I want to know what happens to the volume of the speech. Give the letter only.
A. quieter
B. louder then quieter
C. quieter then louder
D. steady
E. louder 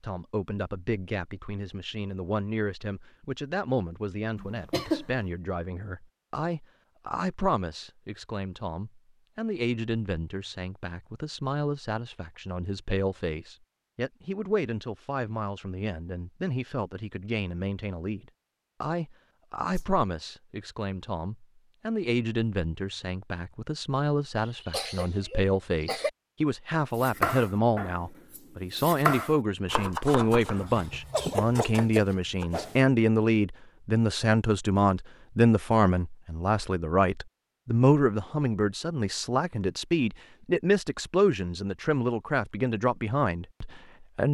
E.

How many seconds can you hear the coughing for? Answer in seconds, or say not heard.
3 s.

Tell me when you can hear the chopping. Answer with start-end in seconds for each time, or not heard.
26.9-32.6.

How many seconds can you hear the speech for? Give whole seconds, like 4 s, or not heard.
44 s.